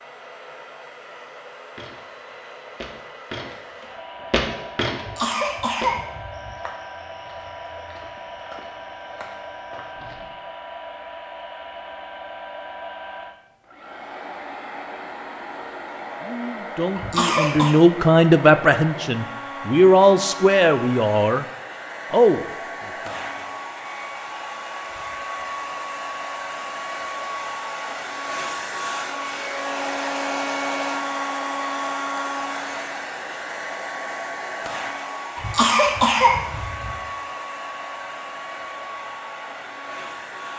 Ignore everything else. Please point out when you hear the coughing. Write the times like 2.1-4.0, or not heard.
5.0-6.5, 16.9-17.8, 35.4-37.0.